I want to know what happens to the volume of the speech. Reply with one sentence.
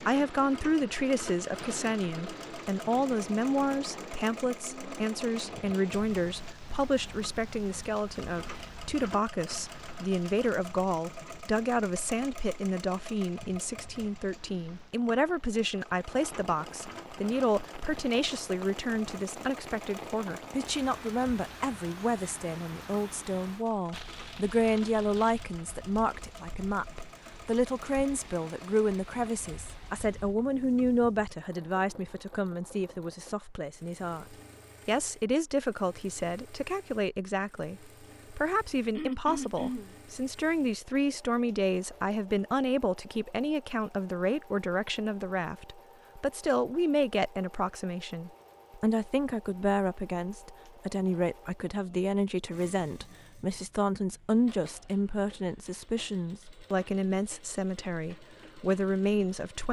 The volume of the speech stays about the same.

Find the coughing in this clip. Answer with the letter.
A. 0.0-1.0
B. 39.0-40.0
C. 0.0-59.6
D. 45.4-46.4
B.